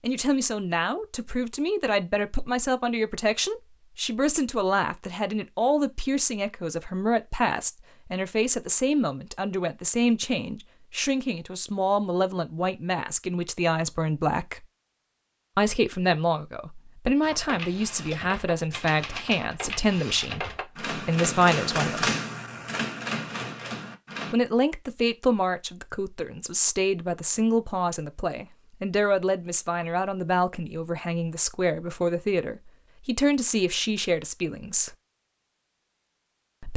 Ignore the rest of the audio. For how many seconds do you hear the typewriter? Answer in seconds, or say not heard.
7 s.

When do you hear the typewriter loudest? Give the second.
22 s.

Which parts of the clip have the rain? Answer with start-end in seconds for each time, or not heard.
not heard.